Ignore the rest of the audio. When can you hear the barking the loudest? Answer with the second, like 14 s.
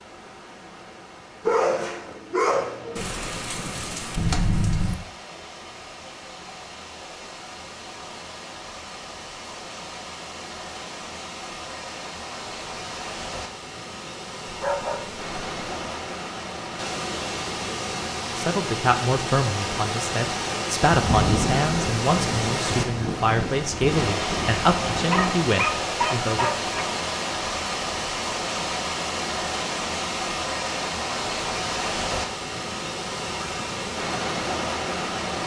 2 s.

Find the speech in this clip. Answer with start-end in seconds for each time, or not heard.
18.4-26.5.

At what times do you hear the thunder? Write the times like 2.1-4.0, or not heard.
3.0-5.0, 20.9-25.4.